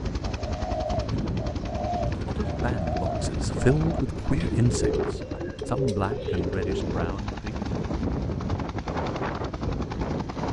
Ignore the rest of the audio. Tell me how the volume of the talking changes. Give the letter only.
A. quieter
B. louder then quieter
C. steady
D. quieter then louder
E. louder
B.